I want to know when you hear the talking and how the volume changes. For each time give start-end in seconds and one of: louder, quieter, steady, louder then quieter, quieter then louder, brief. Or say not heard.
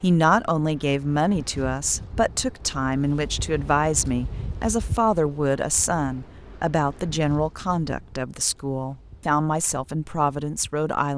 0.0-11.1 steady.